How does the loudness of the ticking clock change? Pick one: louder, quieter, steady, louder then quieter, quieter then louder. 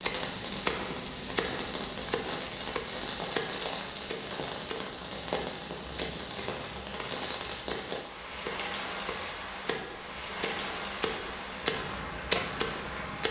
quieter then louder.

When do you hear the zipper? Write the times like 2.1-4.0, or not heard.
not heard.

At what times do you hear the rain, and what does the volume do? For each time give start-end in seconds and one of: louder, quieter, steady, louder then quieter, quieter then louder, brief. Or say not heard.
0.0-13.2 steady.